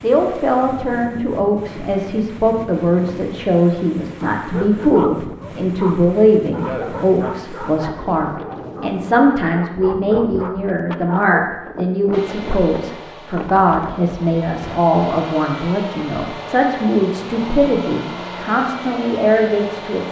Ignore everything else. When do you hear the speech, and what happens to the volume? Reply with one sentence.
The speech can be heard from 0.0 to 20.0 s, at a steady volume.